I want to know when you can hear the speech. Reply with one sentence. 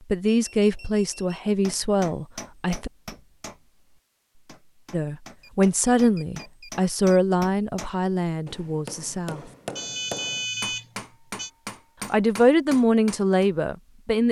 You can hear the speech from 0.1 to 2.9 s, from 4.9 to 9.4 s and from 12.1 to 14.2 s.